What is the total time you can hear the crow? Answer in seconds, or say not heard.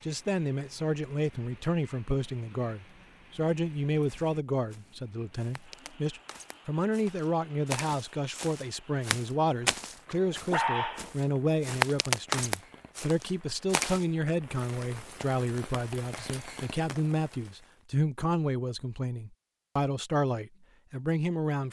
not heard.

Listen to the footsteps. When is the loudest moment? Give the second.
12 s.